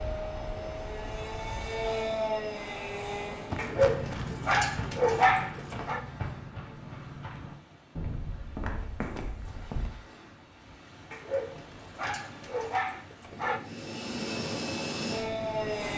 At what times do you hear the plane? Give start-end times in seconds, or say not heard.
0.0-3.6, 13.7-15.9.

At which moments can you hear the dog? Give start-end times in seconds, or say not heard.
3.5-6.0, 11.1-13.6.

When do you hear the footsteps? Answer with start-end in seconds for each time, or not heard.
3.5-10.0.